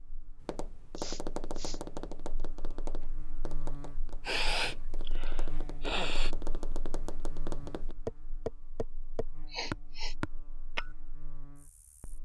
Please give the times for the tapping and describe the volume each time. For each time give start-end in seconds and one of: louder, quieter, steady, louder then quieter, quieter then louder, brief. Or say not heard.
0.3-10.9 quieter then louder.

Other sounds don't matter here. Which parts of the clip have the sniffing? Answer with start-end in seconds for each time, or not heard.
0.9-1.8, 4.2-6.3, 9.4-10.2.